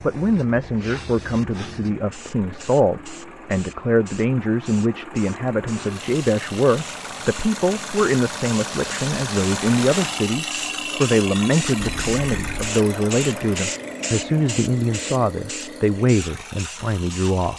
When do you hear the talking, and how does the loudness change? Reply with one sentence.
You can hear the talking from 0.0 to 17.5 s, at a steady volume.